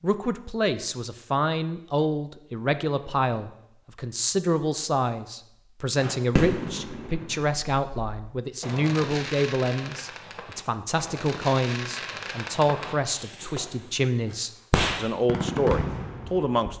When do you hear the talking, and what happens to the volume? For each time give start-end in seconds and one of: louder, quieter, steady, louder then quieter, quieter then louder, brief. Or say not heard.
0.0-16.7 steady.